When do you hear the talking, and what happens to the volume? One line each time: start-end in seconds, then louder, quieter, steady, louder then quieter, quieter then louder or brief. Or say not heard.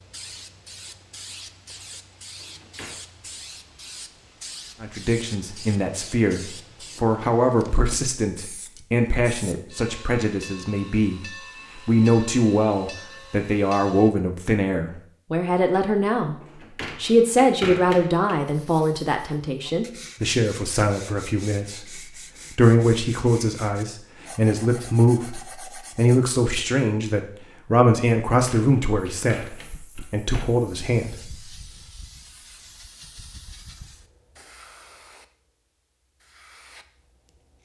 4.8-31.5 steady.